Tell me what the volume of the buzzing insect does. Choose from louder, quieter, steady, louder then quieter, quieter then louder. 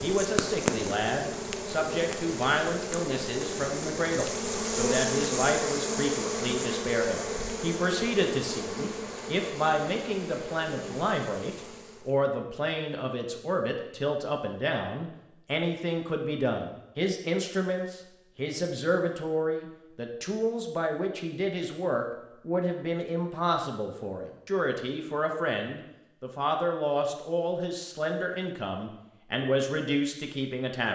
quieter.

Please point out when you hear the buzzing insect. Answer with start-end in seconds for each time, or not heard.
0.0-12.2.